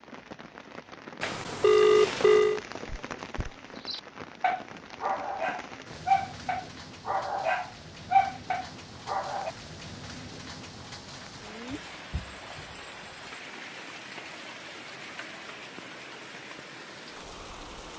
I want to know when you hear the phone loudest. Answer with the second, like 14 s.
2 s.